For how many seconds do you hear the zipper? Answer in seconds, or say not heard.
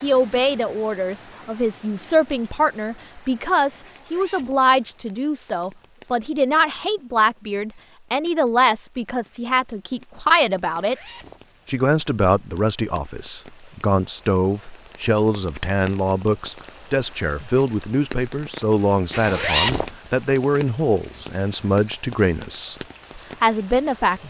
3 s.